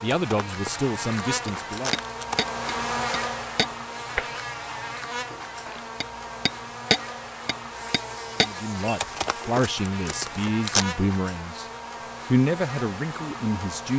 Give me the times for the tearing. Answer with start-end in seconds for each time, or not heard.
0.1-2.5, 8.9-10.8.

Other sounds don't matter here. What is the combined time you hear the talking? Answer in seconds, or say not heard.
7 s.